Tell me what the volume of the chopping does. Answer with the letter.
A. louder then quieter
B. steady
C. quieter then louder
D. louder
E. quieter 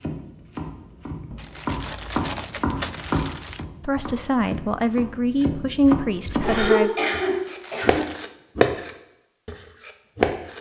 D.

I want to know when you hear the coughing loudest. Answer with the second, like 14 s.
7 s.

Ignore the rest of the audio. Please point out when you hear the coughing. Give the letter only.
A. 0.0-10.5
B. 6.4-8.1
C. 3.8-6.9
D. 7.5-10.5
B.